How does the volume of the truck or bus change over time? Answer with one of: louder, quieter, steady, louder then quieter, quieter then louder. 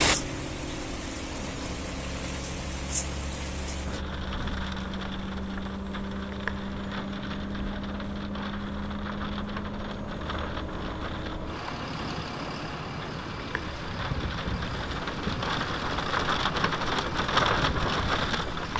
steady.